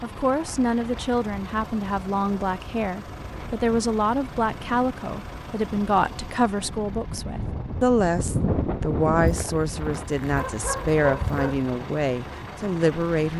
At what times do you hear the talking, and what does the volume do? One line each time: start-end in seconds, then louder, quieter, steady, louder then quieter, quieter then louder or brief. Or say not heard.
0.0-13.3 steady.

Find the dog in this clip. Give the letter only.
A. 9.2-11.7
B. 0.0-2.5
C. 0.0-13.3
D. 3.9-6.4
A.